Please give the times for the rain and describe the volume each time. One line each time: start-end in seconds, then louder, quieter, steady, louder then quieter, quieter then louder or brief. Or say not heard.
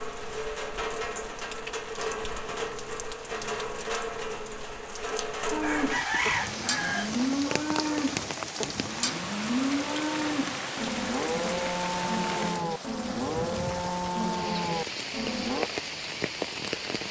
0.0-17.0 steady.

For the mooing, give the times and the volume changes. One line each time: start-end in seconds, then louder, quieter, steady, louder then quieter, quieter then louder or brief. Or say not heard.
5.5-15.7 steady.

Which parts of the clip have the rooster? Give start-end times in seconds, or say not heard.
5.6-7.2.